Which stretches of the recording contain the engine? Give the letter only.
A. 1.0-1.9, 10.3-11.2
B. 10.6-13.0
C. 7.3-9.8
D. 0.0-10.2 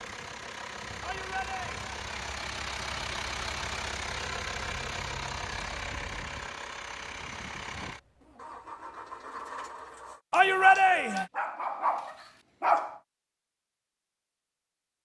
D.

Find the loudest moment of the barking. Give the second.
13 s.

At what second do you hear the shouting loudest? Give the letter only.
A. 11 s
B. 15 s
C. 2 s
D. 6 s
A.